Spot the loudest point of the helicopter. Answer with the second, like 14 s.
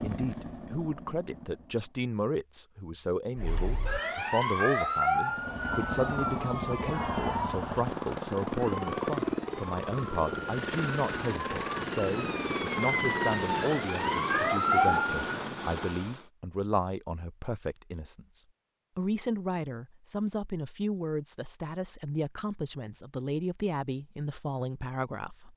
9 s.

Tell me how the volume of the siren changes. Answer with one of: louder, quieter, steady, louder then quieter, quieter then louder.
quieter then louder.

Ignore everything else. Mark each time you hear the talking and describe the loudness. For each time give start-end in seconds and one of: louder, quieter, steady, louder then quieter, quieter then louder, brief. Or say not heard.
0.0-25.5 steady.